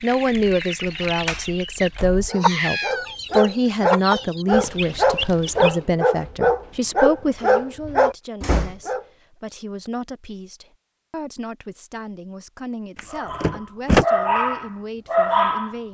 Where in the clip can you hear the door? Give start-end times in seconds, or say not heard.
1.2-2.3, 7.8-8.8, 12.9-14.1.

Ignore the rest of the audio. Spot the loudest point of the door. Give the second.
14 s.